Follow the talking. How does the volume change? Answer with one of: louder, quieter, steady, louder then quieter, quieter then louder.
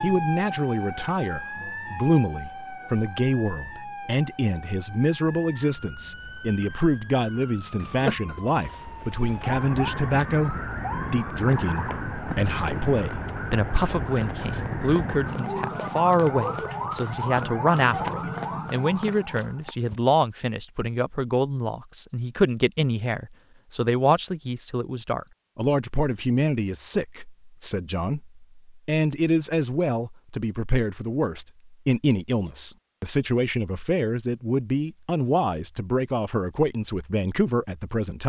steady.